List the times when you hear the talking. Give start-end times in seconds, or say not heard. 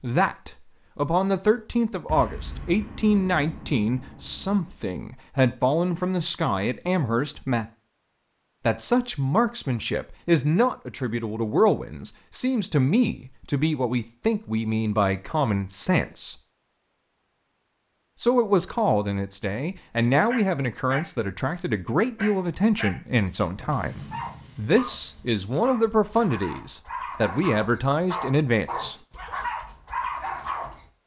0.0-7.7, 8.7-16.4, 18.2-28.9.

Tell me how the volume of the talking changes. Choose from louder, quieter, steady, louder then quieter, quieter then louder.
steady.